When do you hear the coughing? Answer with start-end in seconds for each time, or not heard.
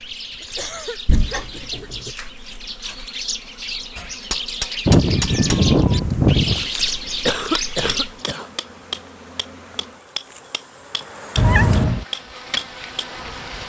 0.4-1.9, 7.2-8.5.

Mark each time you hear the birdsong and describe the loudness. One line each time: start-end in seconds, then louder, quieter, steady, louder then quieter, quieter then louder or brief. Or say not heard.
0.0-8.2 louder.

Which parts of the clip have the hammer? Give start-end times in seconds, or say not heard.
4.0-13.1.